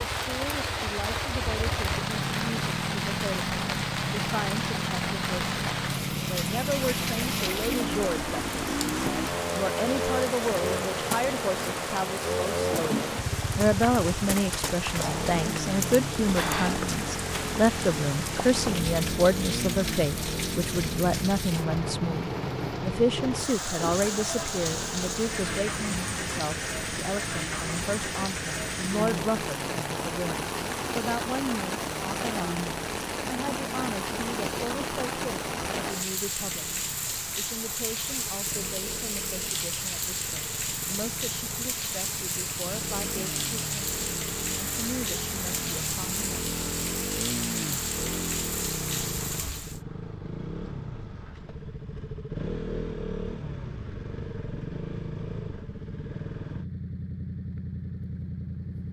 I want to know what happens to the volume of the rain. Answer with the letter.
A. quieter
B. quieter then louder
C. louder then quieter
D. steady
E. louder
D.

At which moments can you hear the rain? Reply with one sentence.
You can hear the rain from 0.0 to 49.8 s.